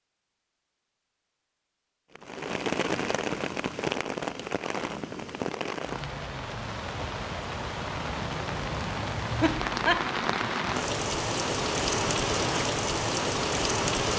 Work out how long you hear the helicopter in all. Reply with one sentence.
You can't hear the helicopter here.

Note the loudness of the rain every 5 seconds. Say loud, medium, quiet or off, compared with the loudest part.
loud, medium, loud.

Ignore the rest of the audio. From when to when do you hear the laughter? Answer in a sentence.
The laughter can be heard from 9.4 to 10.1 s.